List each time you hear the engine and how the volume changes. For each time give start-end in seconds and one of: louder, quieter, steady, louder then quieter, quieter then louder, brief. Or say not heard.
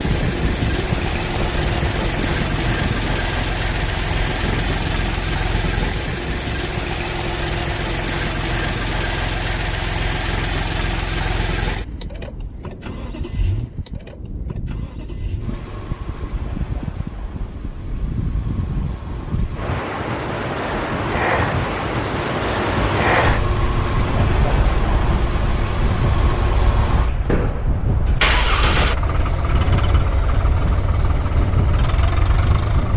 0.0-32.9 quieter then louder.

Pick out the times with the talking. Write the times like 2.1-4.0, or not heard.
not heard.